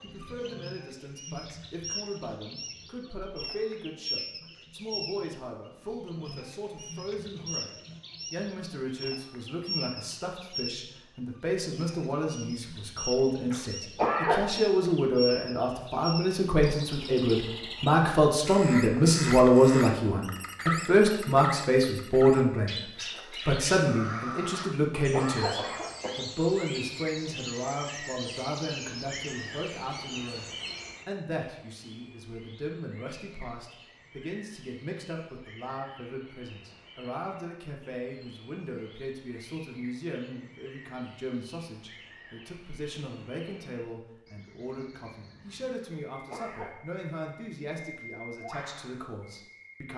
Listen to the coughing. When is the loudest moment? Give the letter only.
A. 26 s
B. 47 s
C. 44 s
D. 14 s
D.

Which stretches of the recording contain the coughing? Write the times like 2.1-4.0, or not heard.
13.5-14.4, 24.6-26.1, 45.8-46.7.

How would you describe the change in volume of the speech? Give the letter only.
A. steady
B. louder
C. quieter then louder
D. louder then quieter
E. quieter
D.